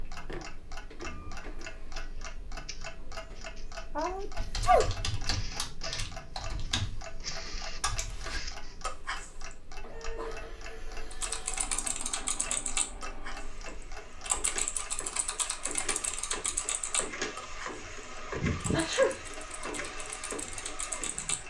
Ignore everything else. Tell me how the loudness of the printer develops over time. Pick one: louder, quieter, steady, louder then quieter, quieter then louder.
louder.